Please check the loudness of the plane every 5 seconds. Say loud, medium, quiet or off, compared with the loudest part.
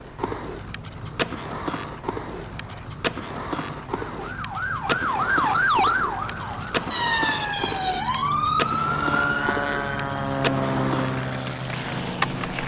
quiet, medium, loud.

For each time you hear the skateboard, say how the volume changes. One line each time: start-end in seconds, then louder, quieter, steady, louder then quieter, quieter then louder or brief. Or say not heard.
0.0-12.6 steady.